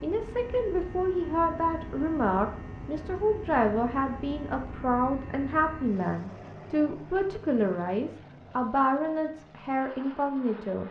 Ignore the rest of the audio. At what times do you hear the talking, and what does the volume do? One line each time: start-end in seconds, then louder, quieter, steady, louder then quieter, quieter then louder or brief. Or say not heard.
0.0-10.8 steady.